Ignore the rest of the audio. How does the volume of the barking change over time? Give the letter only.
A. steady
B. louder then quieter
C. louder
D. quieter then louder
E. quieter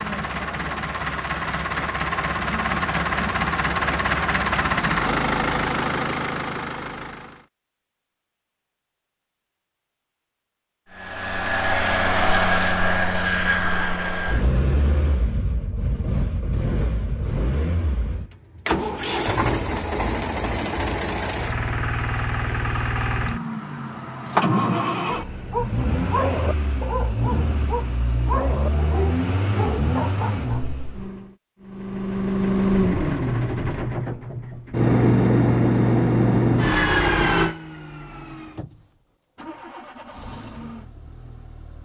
E.